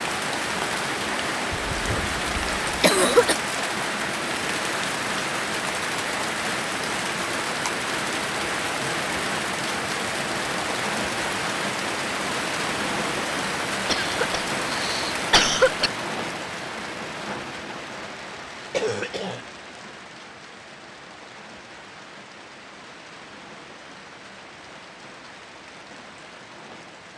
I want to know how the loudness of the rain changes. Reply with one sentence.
The volume of the rain goes down.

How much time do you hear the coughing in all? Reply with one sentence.
You can hear the coughing for 5 seconds altogether.